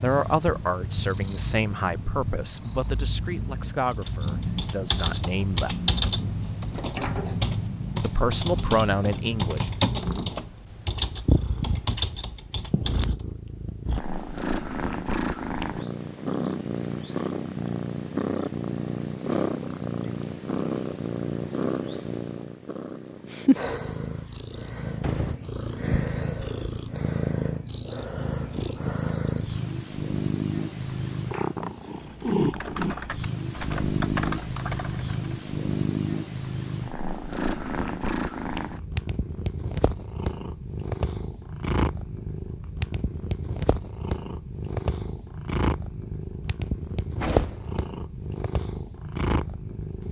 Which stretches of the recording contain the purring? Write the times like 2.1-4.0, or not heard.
0.0-50.0.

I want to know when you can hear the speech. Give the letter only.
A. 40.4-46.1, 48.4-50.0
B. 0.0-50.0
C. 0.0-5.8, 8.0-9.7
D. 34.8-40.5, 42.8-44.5
C.